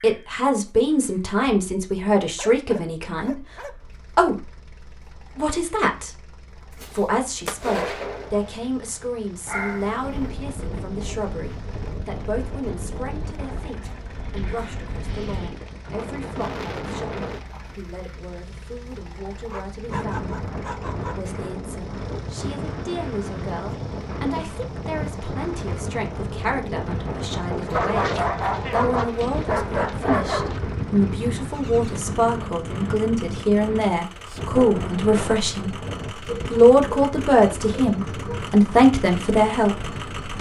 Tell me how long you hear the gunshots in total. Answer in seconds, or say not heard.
2 s.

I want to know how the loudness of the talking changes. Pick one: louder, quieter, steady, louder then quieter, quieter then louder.
quieter then louder.